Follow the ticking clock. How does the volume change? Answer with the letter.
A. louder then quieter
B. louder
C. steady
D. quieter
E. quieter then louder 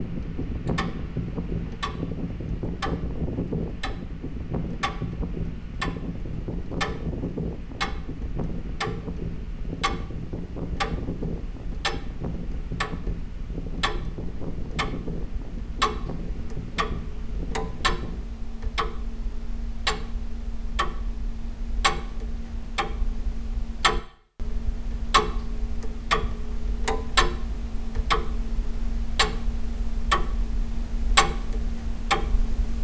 B.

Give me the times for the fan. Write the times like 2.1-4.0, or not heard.
0.0-18.2.